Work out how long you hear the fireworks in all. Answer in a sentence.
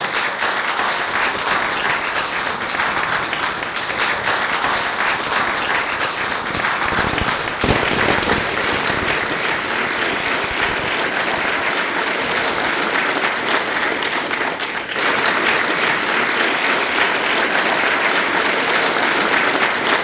You can hear the fireworks for 12 seconds altogether.